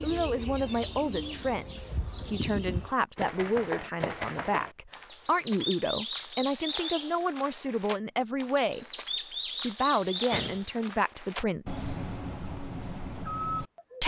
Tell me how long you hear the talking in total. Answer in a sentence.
The talking can be heard for 11 seconds in total.